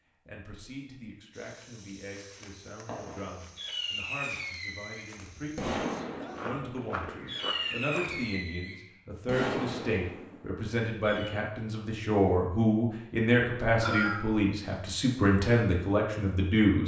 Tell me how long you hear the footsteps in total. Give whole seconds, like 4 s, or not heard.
7 s.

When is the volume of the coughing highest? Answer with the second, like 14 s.
14 s.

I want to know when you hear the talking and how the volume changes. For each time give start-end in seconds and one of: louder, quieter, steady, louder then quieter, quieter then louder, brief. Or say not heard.
0.2-16.8 louder.